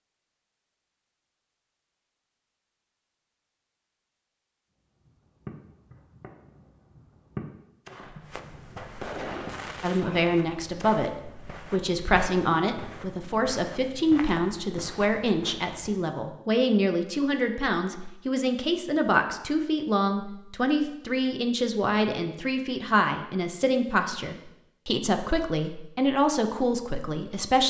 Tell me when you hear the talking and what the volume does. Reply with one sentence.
The talking can be heard from 9.8 to 27.6 s, at a steady volume.